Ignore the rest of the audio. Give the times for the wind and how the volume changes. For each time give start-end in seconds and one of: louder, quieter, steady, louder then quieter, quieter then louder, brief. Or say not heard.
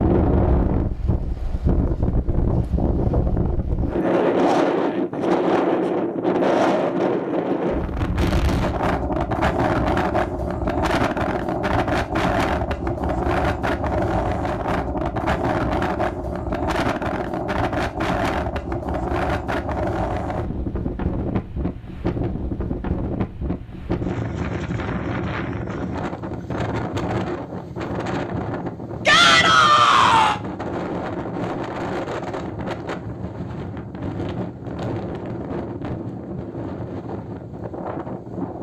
0.0-38.5 quieter.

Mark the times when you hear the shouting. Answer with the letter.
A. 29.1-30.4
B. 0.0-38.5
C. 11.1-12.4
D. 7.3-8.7
A.